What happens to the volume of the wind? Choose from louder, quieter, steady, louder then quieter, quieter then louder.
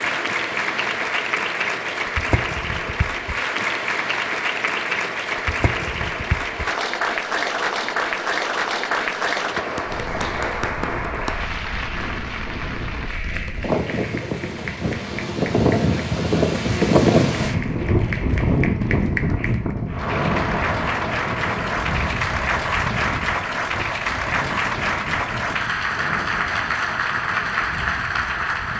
louder then quieter.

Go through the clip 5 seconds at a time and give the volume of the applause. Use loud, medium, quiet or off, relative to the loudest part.
loud, loud, medium, medium, loud, loud.